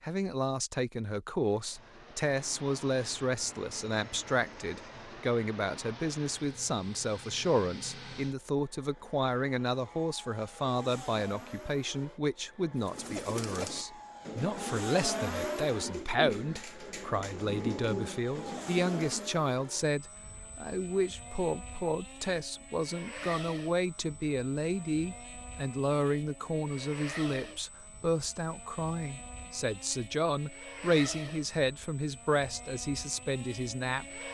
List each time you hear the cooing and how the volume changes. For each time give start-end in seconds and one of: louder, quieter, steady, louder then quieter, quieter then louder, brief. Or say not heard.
12.8-19.3 steady.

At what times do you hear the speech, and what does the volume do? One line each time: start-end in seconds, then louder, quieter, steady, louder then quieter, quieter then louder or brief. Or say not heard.
0.0-34.2 steady.